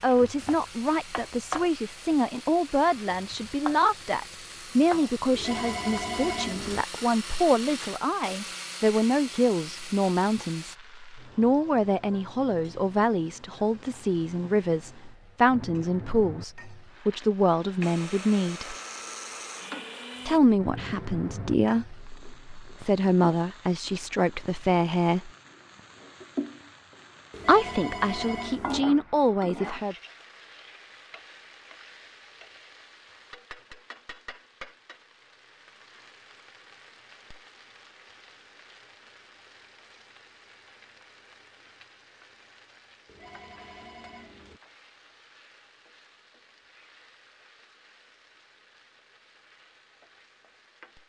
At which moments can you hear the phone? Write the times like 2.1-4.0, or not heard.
5.3-6.8, 27.3-28.9, 43.0-44.6.